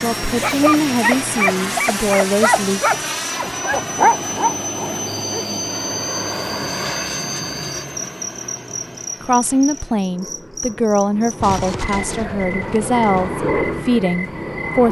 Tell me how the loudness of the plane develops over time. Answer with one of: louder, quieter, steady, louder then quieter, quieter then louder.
quieter then louder.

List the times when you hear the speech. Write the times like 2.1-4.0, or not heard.
0.0-2.8, 9.2-14.8.